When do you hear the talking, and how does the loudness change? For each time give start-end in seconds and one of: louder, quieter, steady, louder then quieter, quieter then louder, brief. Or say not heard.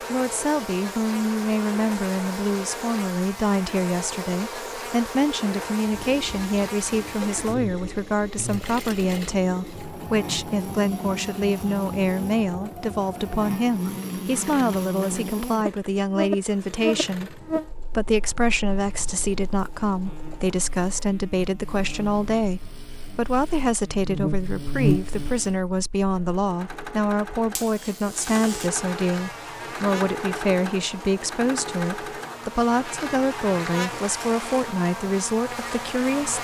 0.1-36.4 steady.